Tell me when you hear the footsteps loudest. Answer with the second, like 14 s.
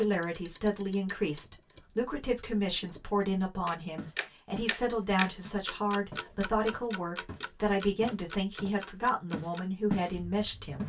10 s.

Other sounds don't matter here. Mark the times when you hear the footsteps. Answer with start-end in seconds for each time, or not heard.
4.0-4.8, 5.4-10.1.